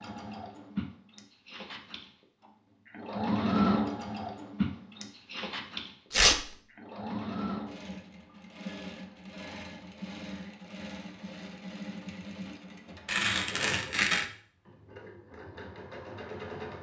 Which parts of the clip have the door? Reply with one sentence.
You can't hear the door here.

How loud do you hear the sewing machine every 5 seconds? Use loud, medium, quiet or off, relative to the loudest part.
loud, medium, medium, medium.